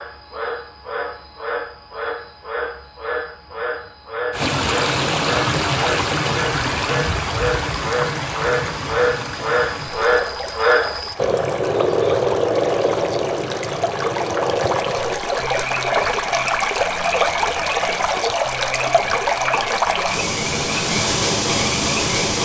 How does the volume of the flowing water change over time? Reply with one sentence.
The volume of the flowing water goes down, then up.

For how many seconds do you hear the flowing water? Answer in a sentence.
The flowing water can be heard for 18 seconds in total.